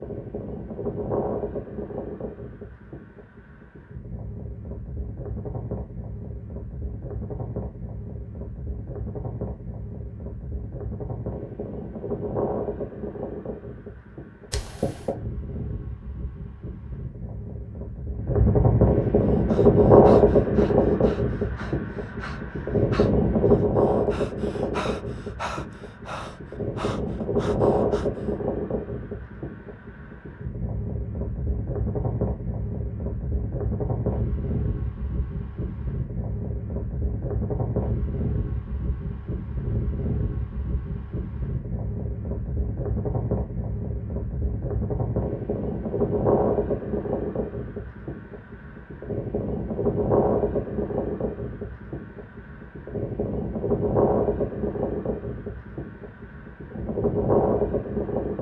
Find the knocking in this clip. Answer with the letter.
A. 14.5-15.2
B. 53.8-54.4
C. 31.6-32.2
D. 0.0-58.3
A.